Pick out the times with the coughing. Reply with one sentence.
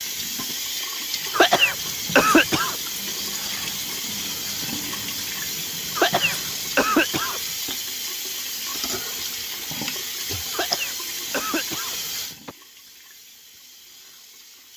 The coughing can be heard from 1.3 to 2.8 s, from 6.0 to 7.4 s and from 10.5 to 12.6 s.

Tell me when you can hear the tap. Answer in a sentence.
The tap can be heard from 0.0 to 14.7 s.